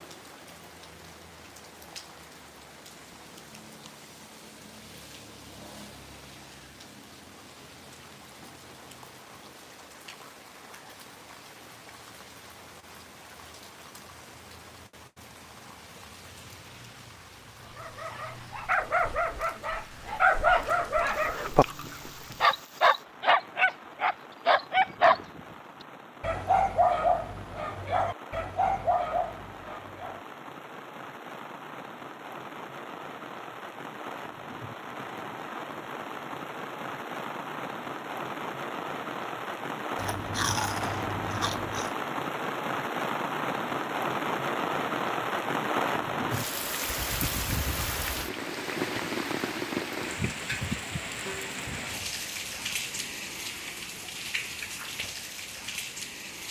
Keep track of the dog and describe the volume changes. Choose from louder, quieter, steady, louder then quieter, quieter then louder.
louder then quieter.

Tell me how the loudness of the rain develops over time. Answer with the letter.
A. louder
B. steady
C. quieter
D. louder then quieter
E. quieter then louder
A.